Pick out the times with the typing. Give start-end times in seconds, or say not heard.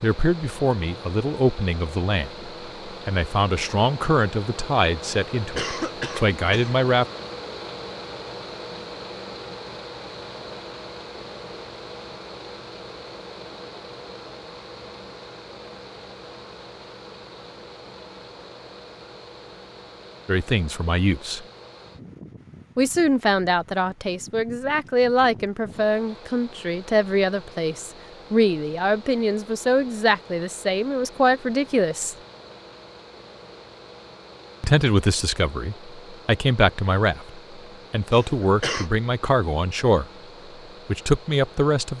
not heard.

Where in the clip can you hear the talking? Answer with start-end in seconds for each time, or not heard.
0.0-7.0, 20.2-21.4, 22.8-32.1, 34.6-40.0, 40.9-41.9.